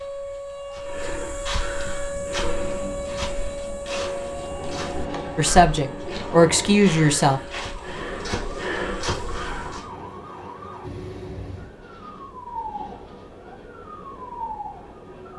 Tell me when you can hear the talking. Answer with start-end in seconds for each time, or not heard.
5.3-7.4.